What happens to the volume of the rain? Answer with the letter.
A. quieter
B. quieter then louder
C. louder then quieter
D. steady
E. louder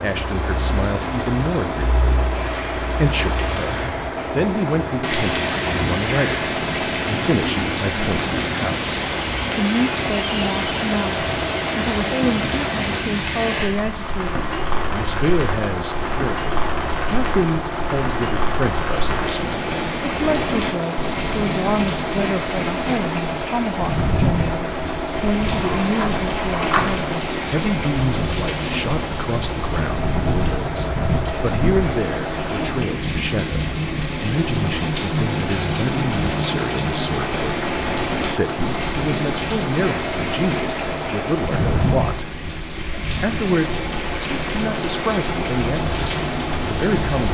D.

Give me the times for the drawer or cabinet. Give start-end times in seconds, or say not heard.
25.5-26.9.